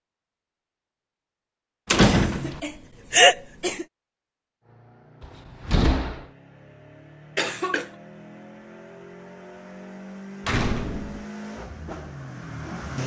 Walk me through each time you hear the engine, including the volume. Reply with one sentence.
You can hear the engine from 4.6 to 13.0 s, getting louder.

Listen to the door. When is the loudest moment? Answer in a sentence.
The loudest moment of the door is at 2 seconds.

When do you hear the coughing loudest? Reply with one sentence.
The loudest moment of the coughing is at 3 seconds.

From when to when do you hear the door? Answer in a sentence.
You can hear the door from 1.9 to 2.6 s, from 5.2 to 6.2 s and from 10.4 to 11.2 s.